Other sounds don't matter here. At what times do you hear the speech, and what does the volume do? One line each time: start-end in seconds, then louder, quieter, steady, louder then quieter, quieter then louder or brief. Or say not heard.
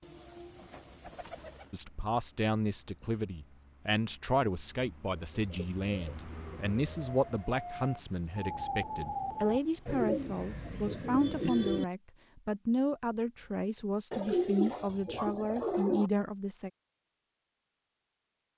1.7-16.7 steady.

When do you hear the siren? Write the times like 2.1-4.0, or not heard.
6.3-9.6.